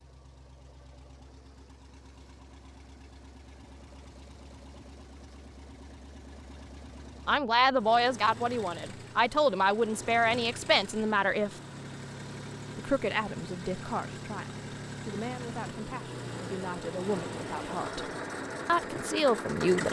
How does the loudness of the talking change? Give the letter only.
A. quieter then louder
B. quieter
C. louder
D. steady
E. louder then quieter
A.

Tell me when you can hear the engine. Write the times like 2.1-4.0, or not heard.
0.0-19.8.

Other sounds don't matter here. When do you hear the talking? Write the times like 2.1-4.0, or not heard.
7.2-11.6, 12.8-19.8.